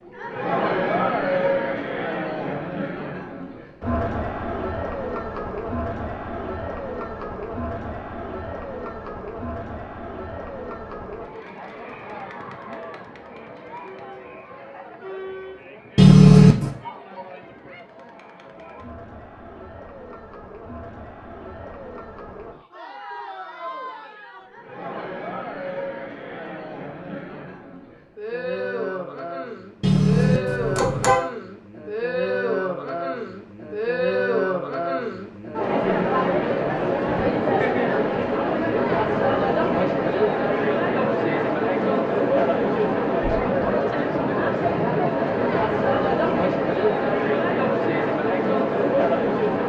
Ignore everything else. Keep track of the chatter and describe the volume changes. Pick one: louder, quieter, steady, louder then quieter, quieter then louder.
quieter then louder.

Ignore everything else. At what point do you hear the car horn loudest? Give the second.
16 s.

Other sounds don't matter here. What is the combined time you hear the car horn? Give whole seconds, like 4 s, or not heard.
2 s.